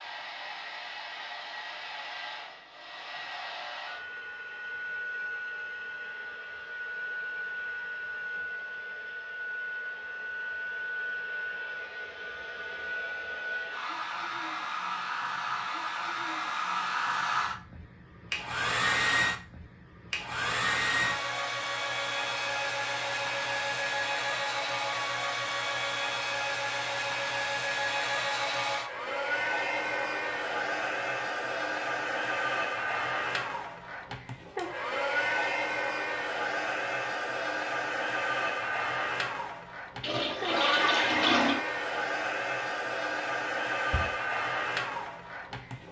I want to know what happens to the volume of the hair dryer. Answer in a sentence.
The loudness of the hair dryer goes up.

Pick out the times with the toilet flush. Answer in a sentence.
You can hear the toilet flush from 40.0 to 41.6 s.